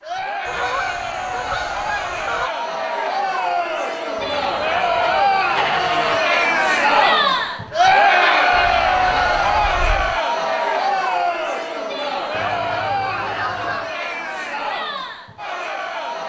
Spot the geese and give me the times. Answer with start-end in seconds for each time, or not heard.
0.5-2.5, 4.2-6.2, 8.5-10.2, 12.3-13.9.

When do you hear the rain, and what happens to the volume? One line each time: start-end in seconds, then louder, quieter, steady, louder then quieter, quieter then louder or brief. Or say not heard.
not heard.